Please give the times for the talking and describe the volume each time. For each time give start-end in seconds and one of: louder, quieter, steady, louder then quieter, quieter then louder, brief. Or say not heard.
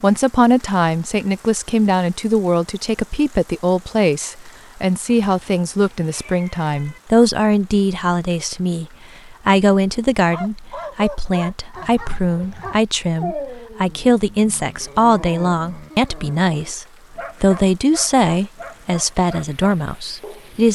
0.0-20.7 steady.